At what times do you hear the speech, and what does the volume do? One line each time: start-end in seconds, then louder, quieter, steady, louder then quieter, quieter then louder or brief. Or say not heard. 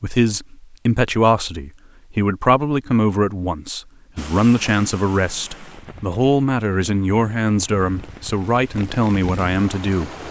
0.0-10.1 steady.